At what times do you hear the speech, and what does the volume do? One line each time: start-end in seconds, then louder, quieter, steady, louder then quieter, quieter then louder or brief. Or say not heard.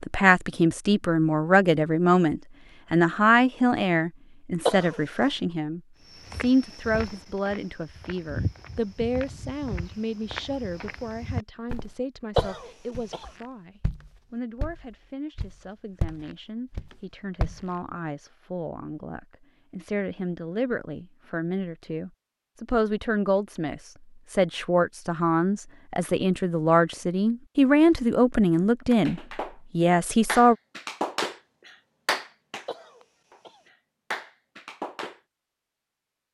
0.0-30.6 quieter then louder.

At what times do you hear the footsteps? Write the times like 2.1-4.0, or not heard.
6.0-17.7.